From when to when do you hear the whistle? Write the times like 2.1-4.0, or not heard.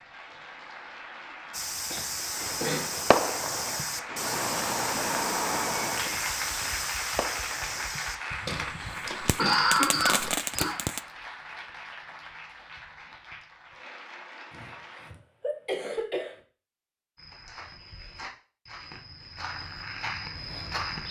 not heard.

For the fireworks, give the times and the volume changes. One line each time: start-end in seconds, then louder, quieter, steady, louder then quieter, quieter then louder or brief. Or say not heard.
2.4-11.0 quieter then louder.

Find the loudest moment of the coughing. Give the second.
10 s.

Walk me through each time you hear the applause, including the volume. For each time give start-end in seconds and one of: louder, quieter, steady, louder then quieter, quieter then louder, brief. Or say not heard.
0.0-15.1 louder then quieter.